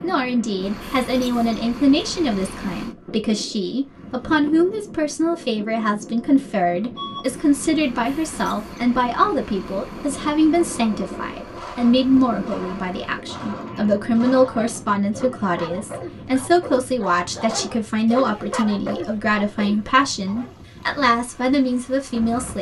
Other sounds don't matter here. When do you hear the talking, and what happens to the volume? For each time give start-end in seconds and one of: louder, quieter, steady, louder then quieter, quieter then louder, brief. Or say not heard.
0.0-22.5 steady.